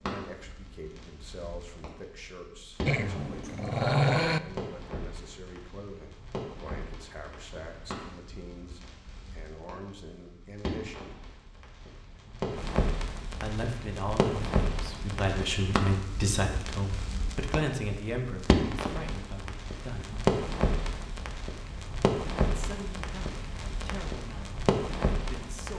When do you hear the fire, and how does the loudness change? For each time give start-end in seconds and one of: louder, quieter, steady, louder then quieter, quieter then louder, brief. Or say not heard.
0.0-25.7 louder.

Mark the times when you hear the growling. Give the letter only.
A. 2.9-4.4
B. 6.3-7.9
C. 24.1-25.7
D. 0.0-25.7
A.